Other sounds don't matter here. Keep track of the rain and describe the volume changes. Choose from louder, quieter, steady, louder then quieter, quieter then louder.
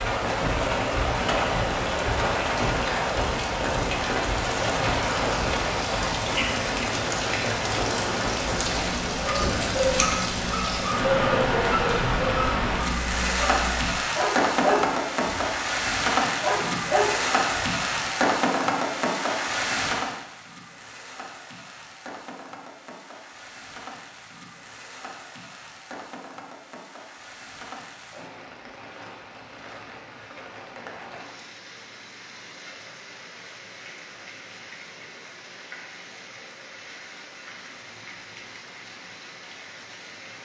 quieter.